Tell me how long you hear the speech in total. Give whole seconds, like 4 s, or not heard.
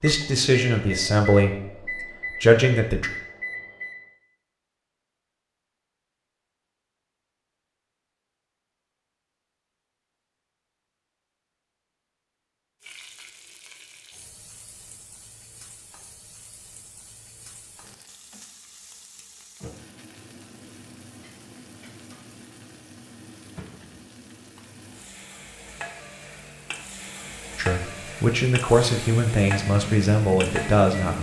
7 s.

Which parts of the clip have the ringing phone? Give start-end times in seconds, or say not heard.
not heard.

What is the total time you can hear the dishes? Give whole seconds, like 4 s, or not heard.
not heard.